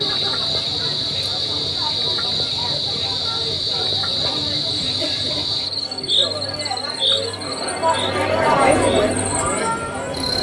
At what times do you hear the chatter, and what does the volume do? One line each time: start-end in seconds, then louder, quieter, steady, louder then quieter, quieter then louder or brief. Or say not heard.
0.0-10.3 louder.